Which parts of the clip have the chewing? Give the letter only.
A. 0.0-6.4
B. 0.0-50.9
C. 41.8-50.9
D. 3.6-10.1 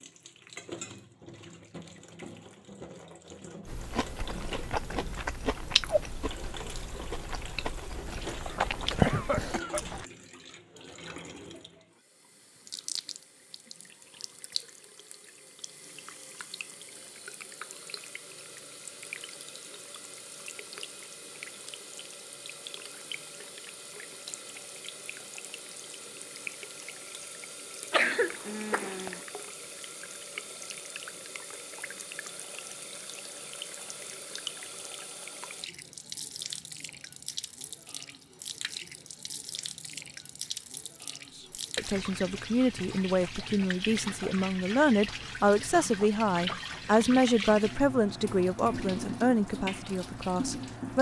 D.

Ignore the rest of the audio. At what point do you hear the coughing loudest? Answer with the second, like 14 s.
28 s.